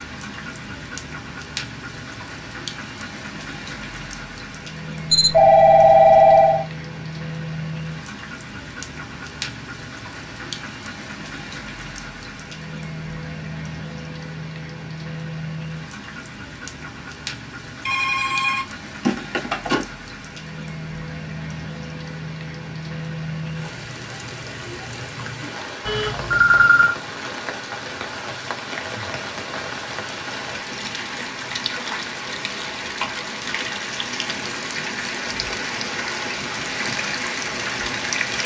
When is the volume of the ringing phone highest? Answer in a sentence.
The volume of the ringing phone peaks at 6 seconds.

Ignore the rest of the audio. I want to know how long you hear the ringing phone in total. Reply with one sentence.
You can hear the ringing phone for 5 seconds altogether.